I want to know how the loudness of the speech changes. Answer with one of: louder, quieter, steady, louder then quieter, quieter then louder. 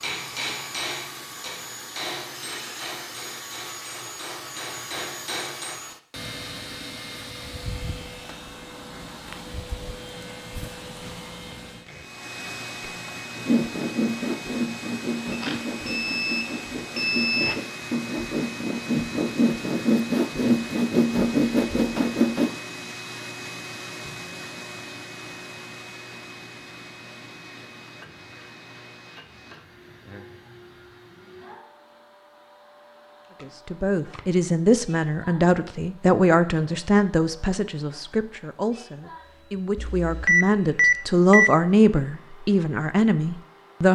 quieter then louder.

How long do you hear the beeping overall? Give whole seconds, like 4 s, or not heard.
4 s.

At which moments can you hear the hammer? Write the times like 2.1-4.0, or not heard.
0.0-5.8.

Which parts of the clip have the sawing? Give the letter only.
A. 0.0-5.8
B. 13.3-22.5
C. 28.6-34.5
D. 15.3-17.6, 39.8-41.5
B.